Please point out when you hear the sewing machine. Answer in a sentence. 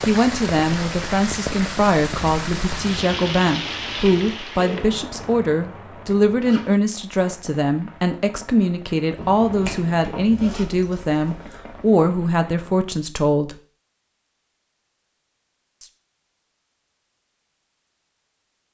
You can't hear the sewing machine here.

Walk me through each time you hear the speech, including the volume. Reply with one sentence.
You can hear the speech from 0.1 to 13.6 s, at a steady volume.